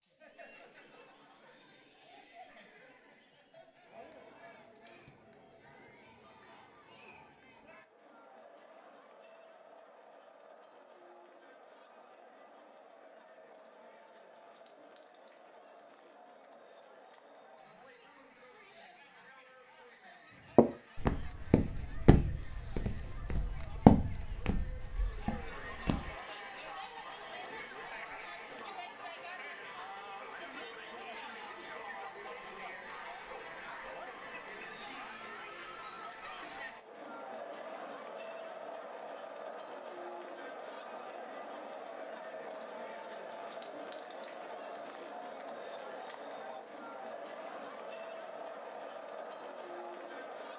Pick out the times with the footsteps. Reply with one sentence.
The footsteps can be heard from 20.6 to 26.1 s.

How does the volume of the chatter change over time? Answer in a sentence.
The volume of the chatter goes up.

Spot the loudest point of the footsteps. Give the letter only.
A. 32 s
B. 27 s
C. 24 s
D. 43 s
C.